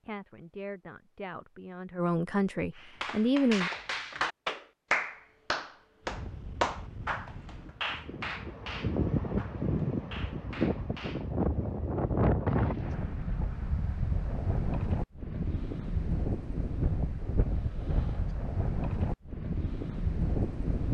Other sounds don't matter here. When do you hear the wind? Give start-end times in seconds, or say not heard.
6.0-20.8.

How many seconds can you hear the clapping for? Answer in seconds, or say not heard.
9 s.